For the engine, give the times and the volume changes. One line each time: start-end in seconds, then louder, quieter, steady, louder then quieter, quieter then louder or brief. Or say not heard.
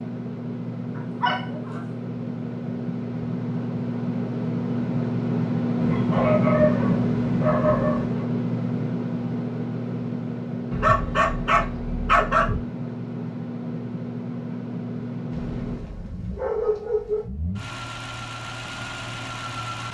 0.0-19.8 louder then quieter.